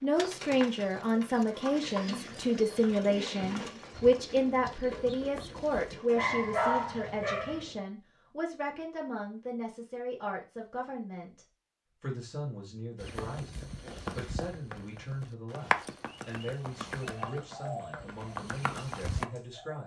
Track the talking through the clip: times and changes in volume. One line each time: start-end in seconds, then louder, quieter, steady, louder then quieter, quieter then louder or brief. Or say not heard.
0.0-19.8 quieter.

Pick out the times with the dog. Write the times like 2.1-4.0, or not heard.
6.2-7.7.